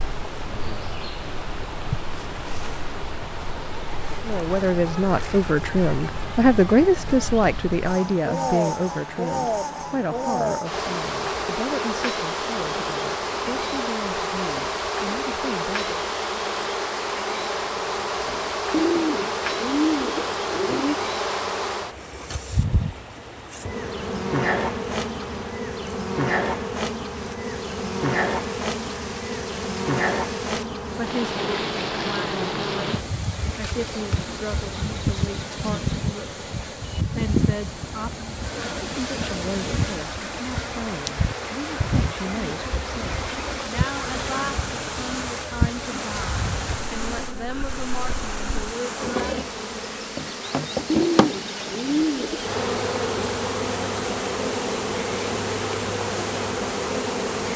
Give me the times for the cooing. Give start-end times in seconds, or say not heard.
18.7-20.9, 50.9-52.5.